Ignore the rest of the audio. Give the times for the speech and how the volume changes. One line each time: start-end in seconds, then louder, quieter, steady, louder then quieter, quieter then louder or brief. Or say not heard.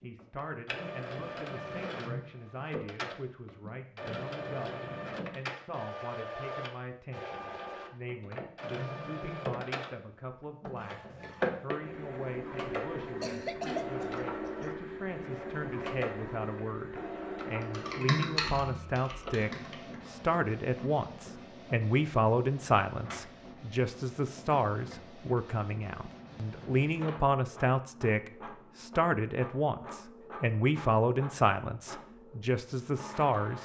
0.0-33.6 louder.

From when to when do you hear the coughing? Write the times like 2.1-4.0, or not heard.
13.1-14.7.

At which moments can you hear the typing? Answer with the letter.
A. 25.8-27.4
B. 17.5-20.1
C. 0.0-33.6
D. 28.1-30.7
B.